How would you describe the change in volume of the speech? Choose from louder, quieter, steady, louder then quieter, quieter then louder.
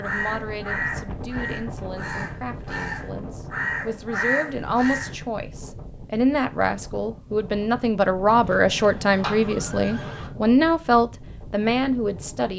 louder.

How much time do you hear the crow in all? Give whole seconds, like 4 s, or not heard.
5 s.